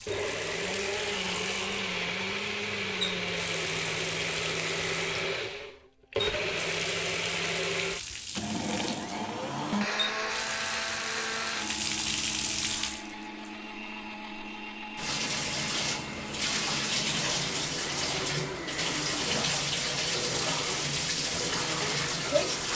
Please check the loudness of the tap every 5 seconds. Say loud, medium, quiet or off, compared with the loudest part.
medium, medium, medium, loud, loud.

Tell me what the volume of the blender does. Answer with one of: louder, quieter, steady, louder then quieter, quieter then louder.
quieter.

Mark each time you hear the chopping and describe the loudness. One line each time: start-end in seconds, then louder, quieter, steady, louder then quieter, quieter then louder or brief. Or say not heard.
not heard.